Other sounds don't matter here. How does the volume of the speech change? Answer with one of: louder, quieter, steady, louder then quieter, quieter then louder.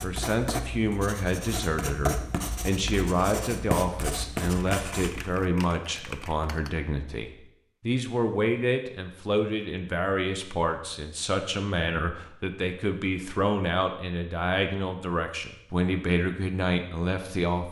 steady.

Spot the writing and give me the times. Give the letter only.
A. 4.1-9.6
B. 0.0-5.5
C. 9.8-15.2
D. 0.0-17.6
B.